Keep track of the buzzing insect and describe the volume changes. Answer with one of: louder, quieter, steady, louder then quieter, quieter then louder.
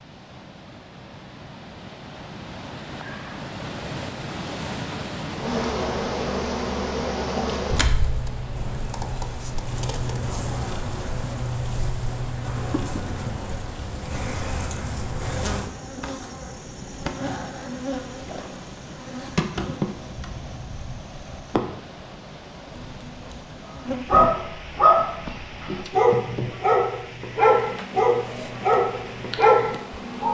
quieter.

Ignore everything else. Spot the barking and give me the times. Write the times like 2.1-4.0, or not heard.
24.1-30.3.